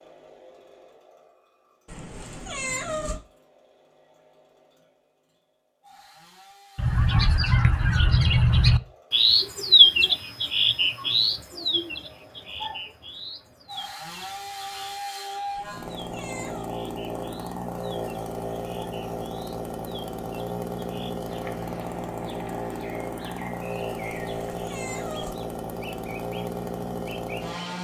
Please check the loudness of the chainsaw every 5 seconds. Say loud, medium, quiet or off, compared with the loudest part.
quiet, quiet, medium, loud, loud, loud.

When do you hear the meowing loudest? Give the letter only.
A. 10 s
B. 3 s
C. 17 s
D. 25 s
B.